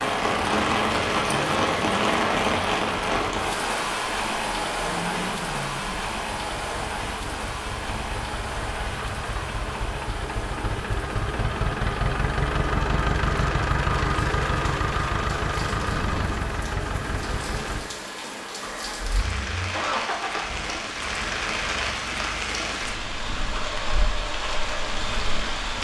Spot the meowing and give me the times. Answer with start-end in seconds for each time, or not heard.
not heard.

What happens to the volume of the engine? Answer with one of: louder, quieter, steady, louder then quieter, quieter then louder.
louder then quieter.